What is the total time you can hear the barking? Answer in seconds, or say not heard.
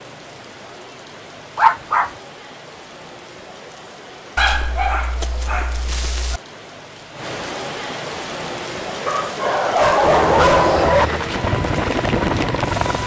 5 s.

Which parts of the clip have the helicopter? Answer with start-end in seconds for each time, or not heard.
10.0-13.0.